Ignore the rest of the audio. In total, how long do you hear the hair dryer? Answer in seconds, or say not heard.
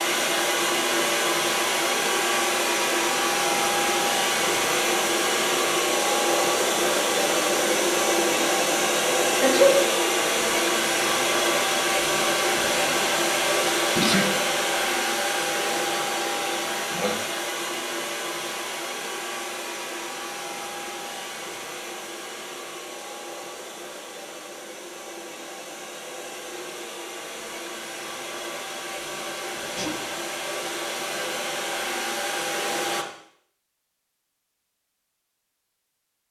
33 s.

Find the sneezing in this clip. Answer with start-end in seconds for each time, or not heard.
9.4-9.9, 13.9-14.3, 29.6-30.1.